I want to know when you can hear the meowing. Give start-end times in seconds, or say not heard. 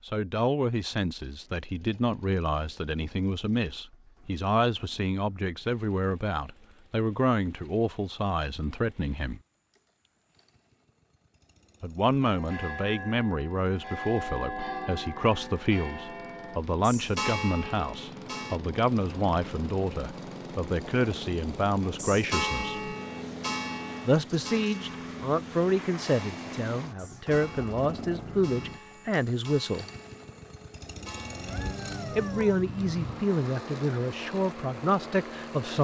31.4-33.2.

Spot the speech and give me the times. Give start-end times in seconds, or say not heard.
0.1-9.4, 11.8-22.8, 24.1-29.9, 32.1-35.7.